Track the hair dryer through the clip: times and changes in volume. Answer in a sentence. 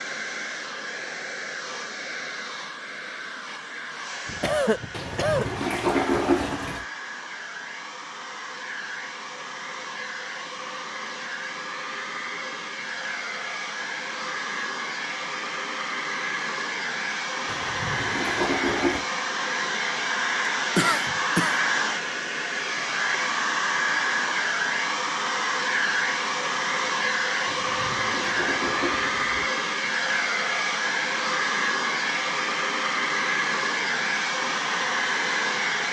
You can hear the hair dryer from 0.0 to 35.8 s, getting louder.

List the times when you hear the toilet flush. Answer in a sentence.
You can hear the toilet flush from 4.9 to 6.8 s, from 17.4 to 19.1 s and from 27.4 to 29.5 s.